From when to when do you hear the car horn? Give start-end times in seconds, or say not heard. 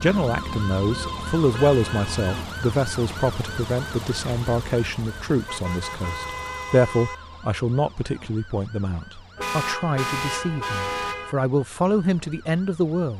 1.5-2.5, 5.5-7.2, 9.3-11.3.